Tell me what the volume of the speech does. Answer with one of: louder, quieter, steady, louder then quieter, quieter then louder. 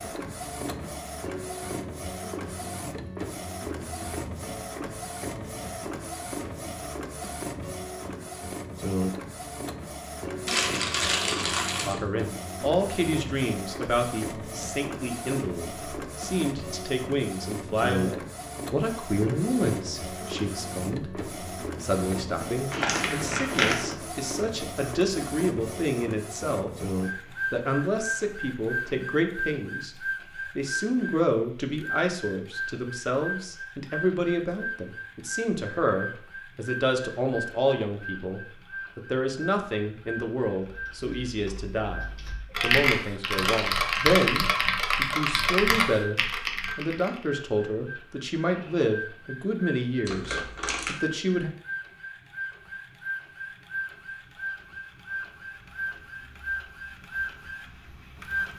steady.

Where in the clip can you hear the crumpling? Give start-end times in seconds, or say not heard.
10.4-11.9, 22.7-23.9, 50.0-51.0.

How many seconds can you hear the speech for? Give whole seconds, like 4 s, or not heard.
39 s.